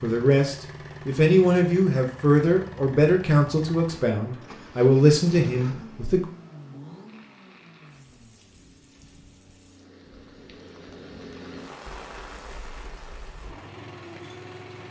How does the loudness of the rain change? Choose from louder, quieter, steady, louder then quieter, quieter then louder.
louder then quieter.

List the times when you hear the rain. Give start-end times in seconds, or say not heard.
7.0-14.8.